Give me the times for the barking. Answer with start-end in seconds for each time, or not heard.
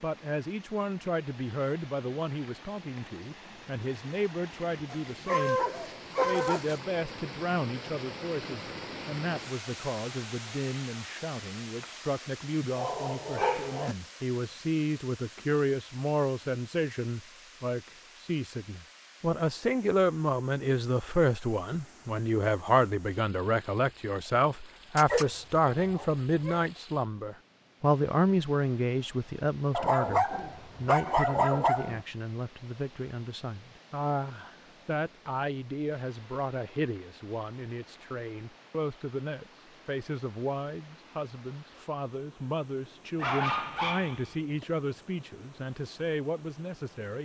4.9-6.8, 12.8-13.9, 24.9-26.6, 29.7-32.0, 43.1-44.6.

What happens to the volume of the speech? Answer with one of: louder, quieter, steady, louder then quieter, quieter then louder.
louder then quieter.